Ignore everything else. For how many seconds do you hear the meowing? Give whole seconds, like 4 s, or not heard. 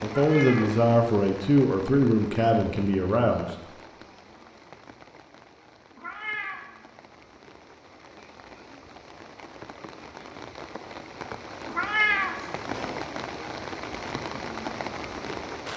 3 s.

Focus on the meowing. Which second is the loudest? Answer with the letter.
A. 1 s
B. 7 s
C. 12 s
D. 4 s
C.